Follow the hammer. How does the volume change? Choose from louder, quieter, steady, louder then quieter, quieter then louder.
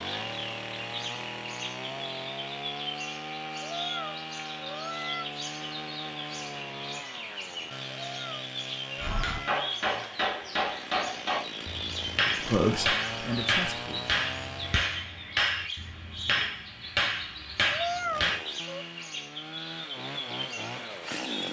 steady.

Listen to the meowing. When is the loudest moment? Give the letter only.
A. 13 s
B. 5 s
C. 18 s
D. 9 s
C.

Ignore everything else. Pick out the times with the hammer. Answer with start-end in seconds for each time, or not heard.
8.9-18.4.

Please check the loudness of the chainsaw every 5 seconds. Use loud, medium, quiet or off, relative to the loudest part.
loud, loud, loud, medium, loud.